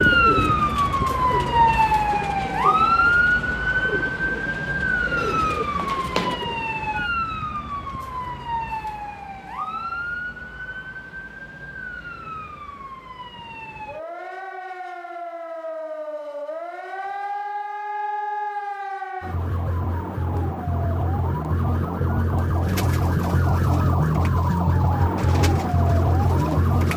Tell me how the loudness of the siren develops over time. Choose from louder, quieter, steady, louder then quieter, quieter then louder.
quieter then louder.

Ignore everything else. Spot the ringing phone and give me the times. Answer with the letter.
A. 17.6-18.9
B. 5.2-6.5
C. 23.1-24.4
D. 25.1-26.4
B.